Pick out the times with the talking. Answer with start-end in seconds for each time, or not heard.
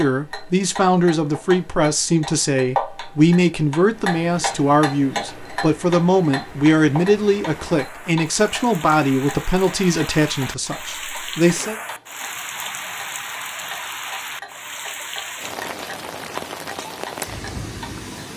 0.0-11.8.